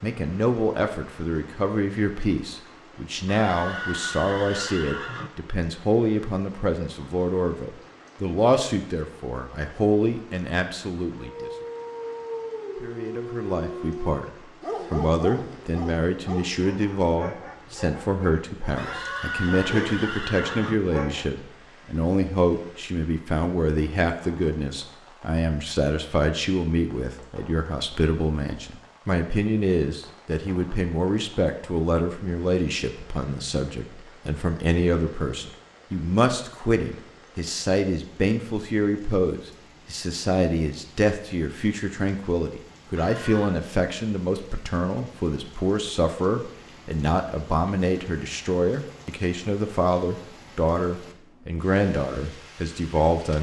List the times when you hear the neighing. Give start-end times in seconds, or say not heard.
3.2-5.3, 18.8-20.8, 43.0-43.6.